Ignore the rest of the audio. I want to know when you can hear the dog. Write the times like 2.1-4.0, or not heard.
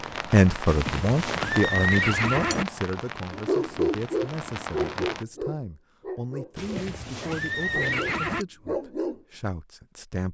3.3-7.0, 7.7-9.2.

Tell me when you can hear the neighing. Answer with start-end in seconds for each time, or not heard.
0.7-2.6, 6.5-8.4.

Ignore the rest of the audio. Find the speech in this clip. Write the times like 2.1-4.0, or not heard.
0.3-10.2.